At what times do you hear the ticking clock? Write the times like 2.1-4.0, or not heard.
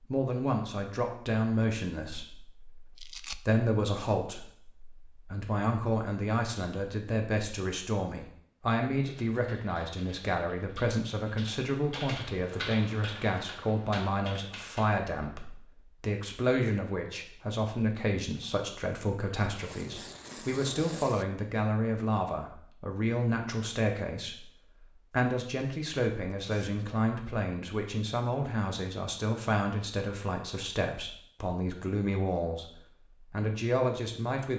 not heard.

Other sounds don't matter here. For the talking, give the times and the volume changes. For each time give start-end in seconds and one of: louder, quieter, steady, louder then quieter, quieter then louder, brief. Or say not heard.
0.0-34.5 steady.